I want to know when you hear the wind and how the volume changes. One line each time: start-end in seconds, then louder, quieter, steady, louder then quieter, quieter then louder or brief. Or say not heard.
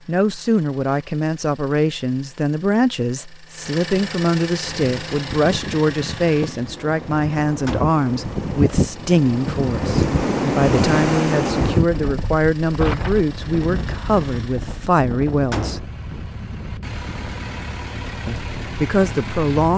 4.8-19.7 louder then quieter.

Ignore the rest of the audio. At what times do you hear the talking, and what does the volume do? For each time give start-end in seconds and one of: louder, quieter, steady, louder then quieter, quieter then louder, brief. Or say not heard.
0.1-15.8 steady
18.2-19.7 brief.